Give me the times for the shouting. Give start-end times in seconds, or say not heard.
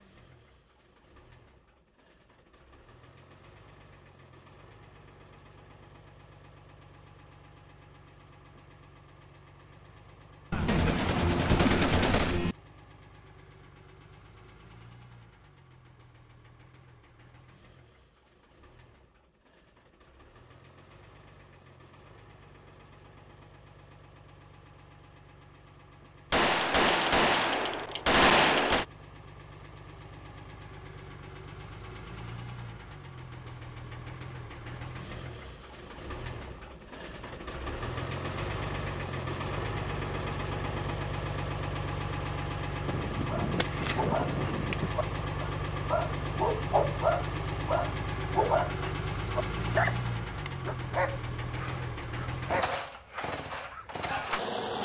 not heard.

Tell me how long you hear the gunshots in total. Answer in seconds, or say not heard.
7 s.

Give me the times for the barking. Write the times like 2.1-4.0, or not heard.
43.2-54.4.